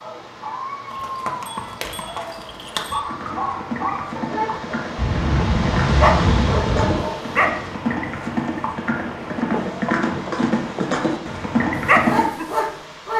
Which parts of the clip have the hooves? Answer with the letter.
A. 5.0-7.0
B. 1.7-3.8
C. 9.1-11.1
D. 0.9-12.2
D.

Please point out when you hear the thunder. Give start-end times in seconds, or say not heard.
5.0-7.0.